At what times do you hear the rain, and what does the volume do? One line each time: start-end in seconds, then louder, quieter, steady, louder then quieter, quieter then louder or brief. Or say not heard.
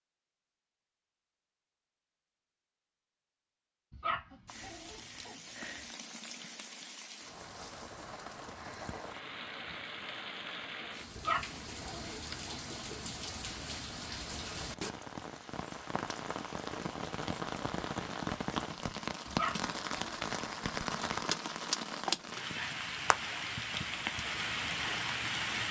4.5-25.6 louder.